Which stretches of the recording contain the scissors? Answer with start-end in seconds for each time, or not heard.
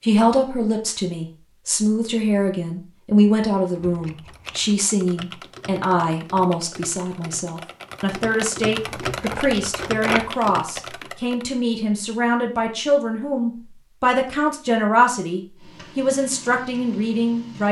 3.8-4.7, 9.0-10.3.